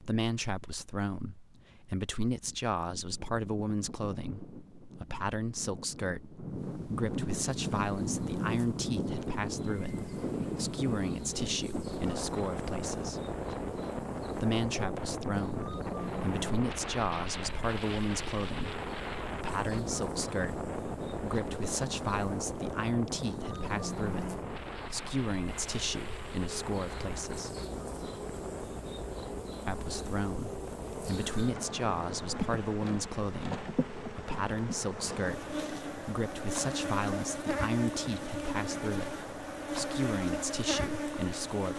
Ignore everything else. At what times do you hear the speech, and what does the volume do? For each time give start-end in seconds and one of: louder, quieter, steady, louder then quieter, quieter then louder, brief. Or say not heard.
0.0-13.2 steady
14.3-27.6 steady
29.6-41.7 steady.